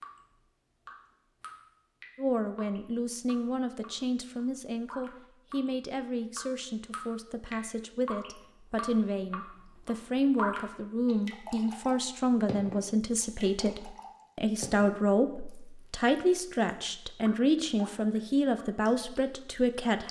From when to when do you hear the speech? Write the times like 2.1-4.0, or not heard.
2.1-20.0.